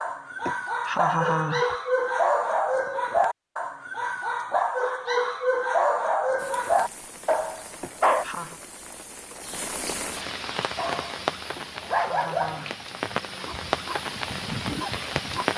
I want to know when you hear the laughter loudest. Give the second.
1 s.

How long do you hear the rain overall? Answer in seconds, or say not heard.
9 s.